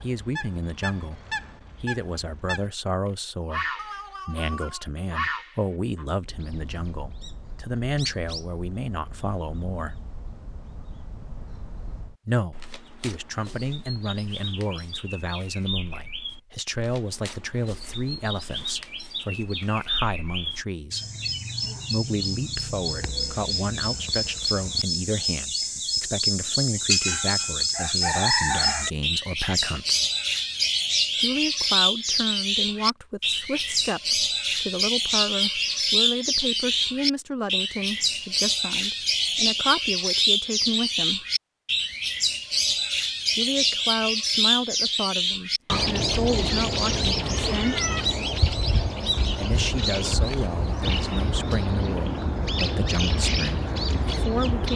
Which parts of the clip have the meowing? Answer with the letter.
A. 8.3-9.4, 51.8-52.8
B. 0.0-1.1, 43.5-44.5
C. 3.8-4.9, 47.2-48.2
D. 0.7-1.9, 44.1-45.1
C.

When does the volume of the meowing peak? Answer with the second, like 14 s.
48 s.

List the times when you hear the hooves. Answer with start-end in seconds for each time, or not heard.
not heard.